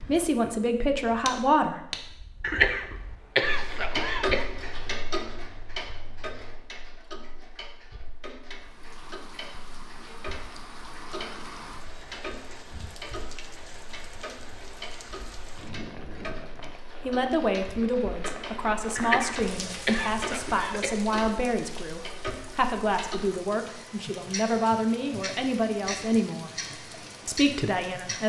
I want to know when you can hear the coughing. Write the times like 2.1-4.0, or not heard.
2.4-4.5, 18.9-20.9.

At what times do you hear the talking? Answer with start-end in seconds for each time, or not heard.
0.1-2.1, 17.1-26.5, 27.2-28.2.